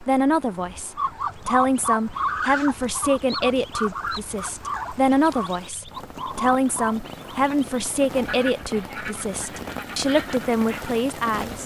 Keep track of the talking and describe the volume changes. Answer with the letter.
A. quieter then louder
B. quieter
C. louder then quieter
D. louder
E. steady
E.